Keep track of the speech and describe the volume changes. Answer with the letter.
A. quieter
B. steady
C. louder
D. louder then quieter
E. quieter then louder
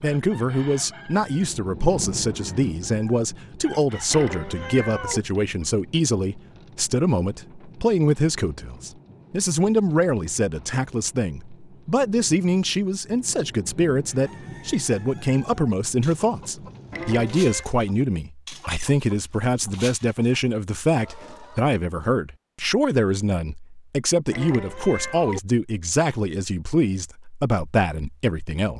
B.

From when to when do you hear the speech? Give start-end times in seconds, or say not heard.
0.0-28.7.